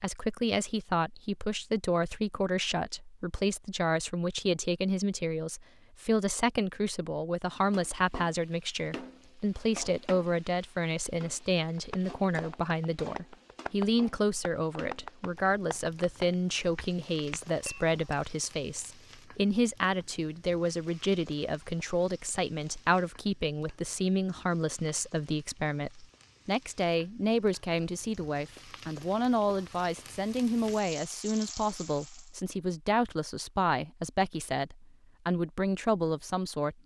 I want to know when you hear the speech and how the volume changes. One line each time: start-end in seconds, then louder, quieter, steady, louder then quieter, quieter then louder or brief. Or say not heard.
0.0-36.8 steady.